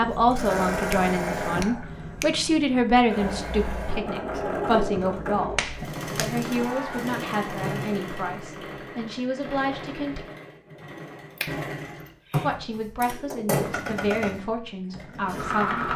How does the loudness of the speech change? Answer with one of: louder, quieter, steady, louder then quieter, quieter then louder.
quieter.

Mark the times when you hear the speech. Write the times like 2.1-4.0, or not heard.
0.0-10.2, 12.4-15.9.